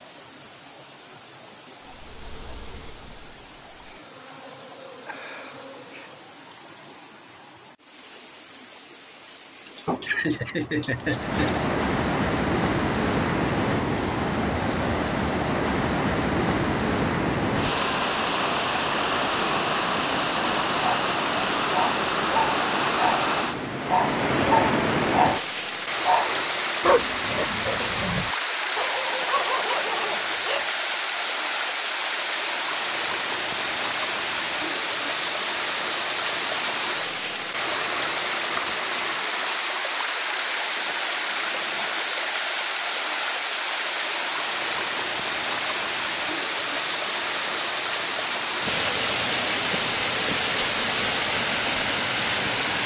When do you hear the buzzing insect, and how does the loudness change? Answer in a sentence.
You can hear the buzzing insect from 1.9 to 6.4 s, getting quieter then louder.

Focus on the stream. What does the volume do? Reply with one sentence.
The loudness of the stream goes up.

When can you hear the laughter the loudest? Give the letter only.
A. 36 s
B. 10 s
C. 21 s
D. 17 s
B.